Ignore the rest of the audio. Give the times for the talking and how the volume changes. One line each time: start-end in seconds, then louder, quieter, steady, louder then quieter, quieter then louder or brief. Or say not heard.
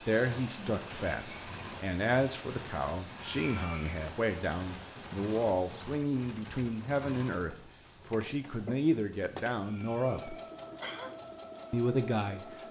0.1-10.3 steady
11.7-12.6 brief.